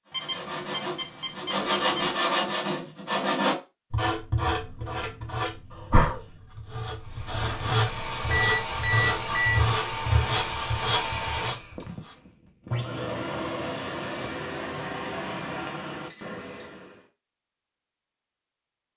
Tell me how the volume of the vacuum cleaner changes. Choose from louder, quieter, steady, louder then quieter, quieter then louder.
steady.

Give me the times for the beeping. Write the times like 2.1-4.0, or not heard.
0.1-2.1, 8.2-9.7, 15.3-16.6.